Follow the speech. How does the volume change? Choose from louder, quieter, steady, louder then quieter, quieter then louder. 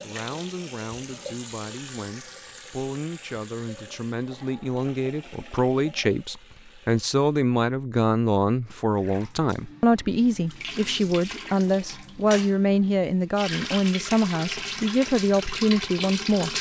louder.